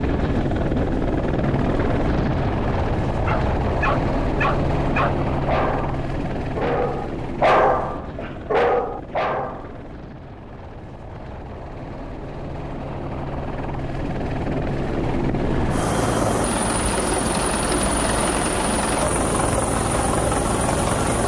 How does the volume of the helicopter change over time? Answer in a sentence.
The loudness of the helicopter goes down, then up.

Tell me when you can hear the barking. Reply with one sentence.
You can hear the barking from 3.2 to 9.7 s.